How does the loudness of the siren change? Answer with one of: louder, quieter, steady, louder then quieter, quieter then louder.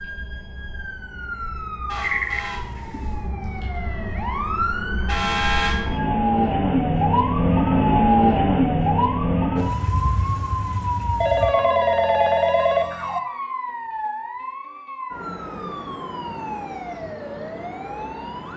louder then quieter.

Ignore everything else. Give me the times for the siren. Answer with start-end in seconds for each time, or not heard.
0.0-18.5.